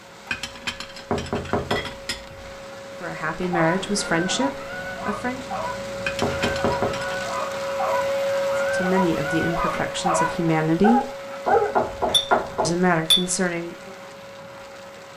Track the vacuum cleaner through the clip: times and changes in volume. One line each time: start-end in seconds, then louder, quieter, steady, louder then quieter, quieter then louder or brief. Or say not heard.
0.0-15.1 louder then quieter.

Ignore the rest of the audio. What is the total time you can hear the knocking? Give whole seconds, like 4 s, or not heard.
3 s.